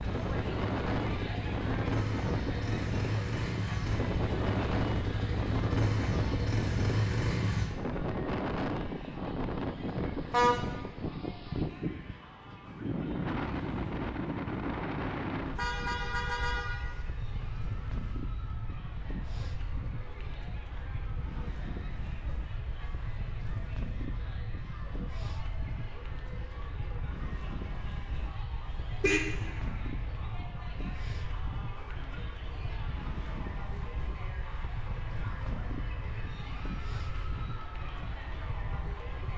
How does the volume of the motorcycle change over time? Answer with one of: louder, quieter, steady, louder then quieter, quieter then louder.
louder.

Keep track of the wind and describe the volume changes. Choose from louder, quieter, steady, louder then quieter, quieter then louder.
quieter.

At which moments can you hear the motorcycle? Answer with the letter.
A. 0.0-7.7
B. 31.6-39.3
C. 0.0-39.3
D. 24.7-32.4
A.